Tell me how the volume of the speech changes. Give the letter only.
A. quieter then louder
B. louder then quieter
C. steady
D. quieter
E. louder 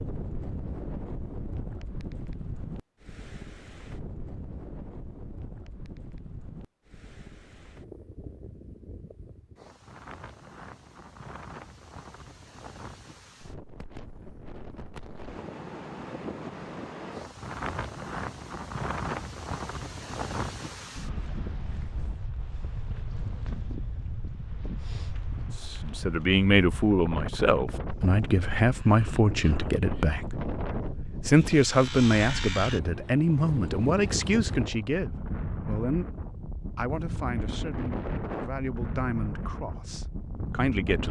D.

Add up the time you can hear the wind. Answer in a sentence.
The wind can be heard for 41 seconds in total.